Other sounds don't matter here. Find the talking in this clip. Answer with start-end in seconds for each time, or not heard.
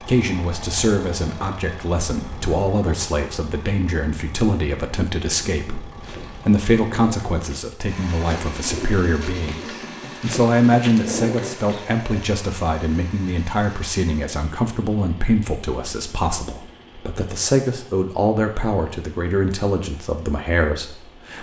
0.0-21.3.